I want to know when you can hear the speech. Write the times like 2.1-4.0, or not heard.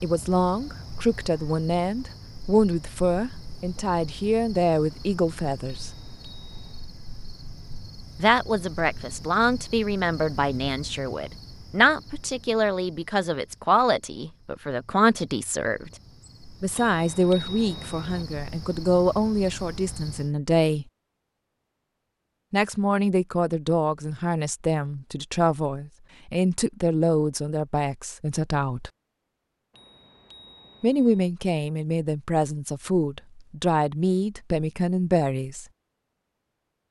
0.0-6.0, 8.2-15.9, 16.6-20.9, 22.5-28.9, 30.8-35.6.